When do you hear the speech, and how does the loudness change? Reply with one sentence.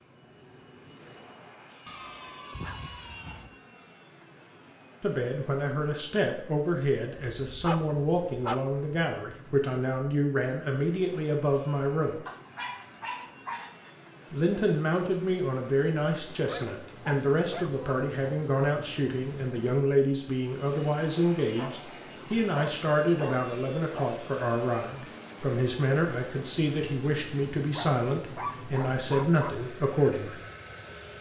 You can hear the speech from 5.0 to 12.2 s, at a steady volume; and from 14.3 to 30.4 s, at a steady volume.